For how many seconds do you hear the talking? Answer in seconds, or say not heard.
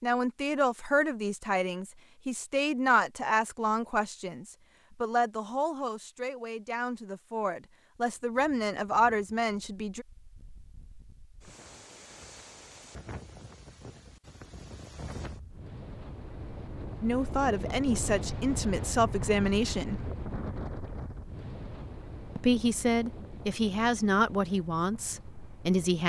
17 s.